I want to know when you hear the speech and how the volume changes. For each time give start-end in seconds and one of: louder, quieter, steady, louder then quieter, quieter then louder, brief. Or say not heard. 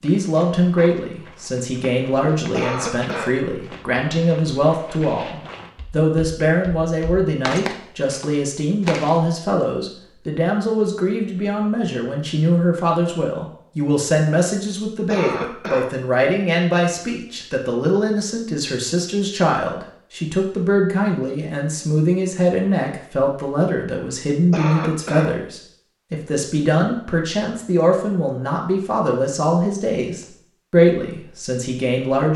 0.0-32.3 steady.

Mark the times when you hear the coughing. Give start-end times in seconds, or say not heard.
2.5-3.4, 15.1-15.9, 24.5-25.4.